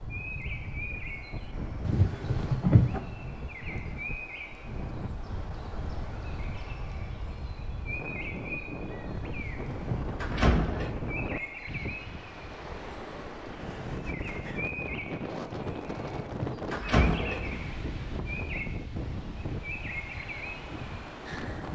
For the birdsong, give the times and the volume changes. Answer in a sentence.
The birdsong can be heard from 0.0 to 21.7 s, at a steady volume.